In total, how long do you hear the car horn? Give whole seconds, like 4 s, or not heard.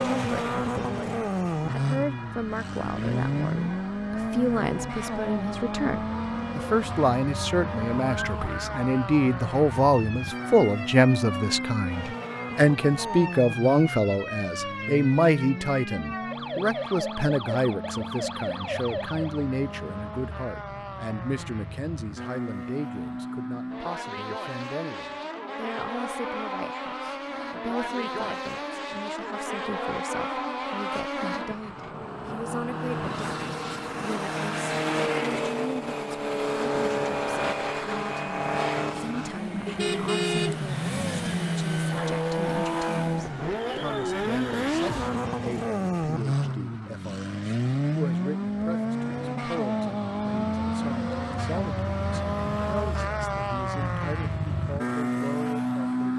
2 s.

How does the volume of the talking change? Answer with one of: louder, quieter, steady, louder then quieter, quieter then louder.
quieter.